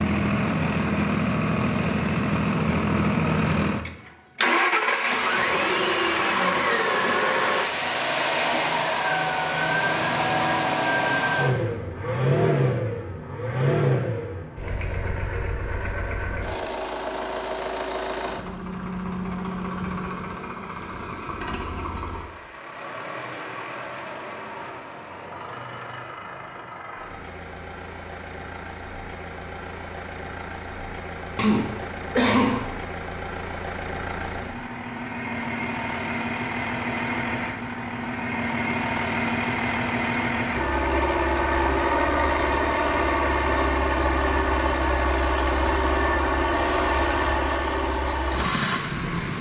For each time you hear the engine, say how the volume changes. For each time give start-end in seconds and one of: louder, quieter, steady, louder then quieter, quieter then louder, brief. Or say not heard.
0.0-49.3 quieter then louder.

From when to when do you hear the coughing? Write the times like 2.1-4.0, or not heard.
31.4-32.7.